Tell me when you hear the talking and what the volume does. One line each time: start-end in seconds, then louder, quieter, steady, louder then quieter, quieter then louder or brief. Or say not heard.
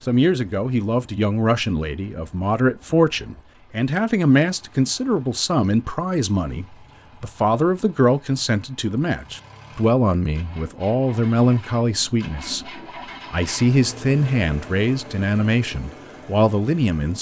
0.1-17.1 steady.